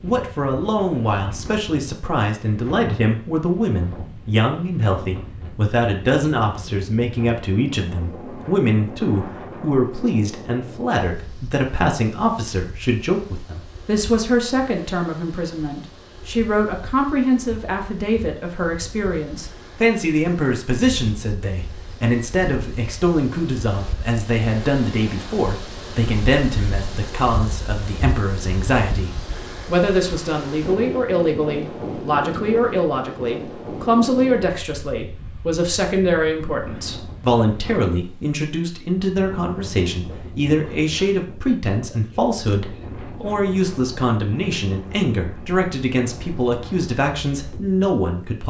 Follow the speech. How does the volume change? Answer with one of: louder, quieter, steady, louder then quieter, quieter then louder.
steady.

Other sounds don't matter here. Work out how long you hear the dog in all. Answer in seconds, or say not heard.
not heard.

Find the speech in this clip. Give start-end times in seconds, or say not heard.
0.0-48.4.